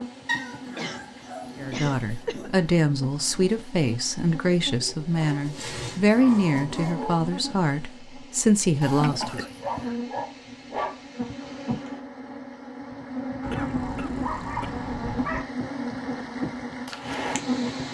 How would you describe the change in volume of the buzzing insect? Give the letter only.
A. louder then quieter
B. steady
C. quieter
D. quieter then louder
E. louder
E.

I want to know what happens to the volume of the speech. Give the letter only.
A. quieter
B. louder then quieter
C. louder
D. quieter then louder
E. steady
E.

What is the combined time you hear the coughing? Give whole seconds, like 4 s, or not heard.
4 s.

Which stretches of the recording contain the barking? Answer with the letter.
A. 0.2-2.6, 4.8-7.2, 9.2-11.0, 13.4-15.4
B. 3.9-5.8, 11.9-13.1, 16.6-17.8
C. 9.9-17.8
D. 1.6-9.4
A.